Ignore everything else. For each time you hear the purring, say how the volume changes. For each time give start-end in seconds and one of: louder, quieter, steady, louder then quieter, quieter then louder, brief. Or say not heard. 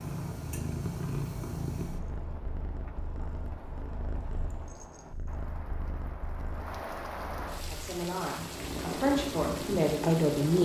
0.0-10.5 quieter then louder.